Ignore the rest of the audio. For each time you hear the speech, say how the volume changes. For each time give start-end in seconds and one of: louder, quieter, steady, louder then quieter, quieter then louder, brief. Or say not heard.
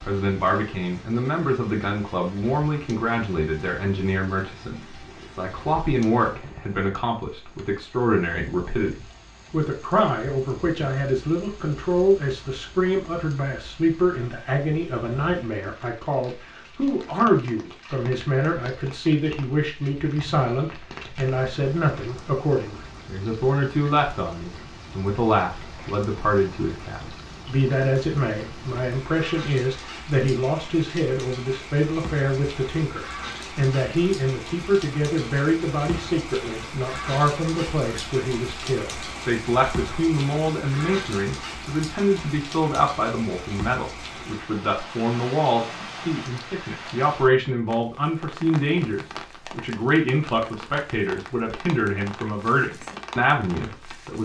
0.0-54.2 steady.